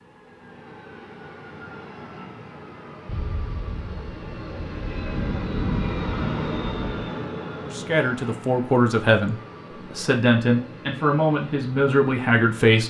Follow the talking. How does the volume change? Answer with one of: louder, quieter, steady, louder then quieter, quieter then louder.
steady.